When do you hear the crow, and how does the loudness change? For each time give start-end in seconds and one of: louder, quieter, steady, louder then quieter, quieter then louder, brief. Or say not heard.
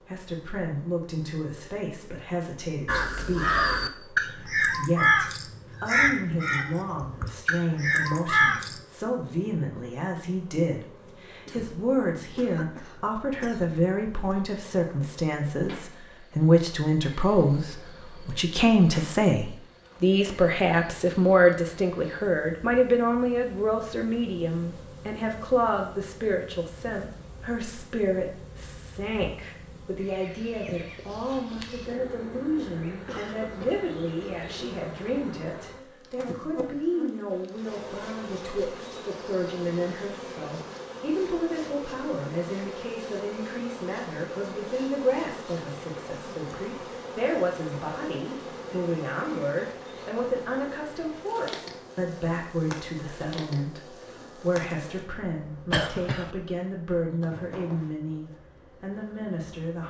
2.9-8.8 quieter then louder.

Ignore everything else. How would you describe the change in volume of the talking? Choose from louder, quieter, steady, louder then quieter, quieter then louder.
louder then quieter.